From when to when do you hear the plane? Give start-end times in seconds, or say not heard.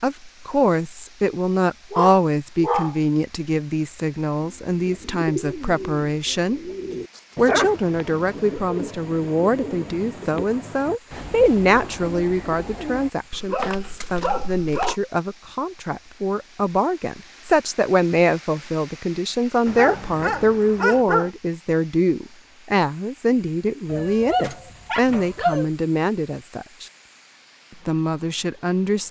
not heard.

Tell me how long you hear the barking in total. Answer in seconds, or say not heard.
7 s.